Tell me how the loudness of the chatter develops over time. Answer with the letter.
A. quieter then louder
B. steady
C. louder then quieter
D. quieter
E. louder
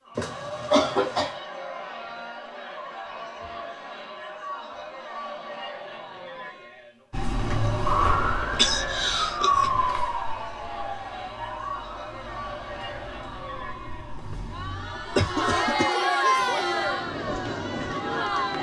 E.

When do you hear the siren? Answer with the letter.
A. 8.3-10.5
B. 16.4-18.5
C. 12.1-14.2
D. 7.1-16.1
D.